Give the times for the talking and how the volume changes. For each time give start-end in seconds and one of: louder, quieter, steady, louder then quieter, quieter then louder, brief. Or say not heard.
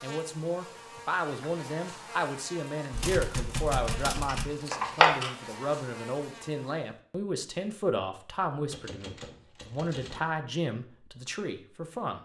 0.0-12.2 steady.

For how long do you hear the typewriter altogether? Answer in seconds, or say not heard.
3 s.